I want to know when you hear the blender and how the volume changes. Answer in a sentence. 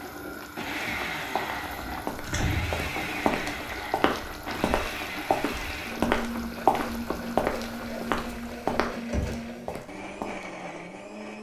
You can hear the blender from 0.0 to 11.3 s, at a steady volume.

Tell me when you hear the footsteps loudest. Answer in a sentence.
The loudest moment of the footsteps is at 7 seconds.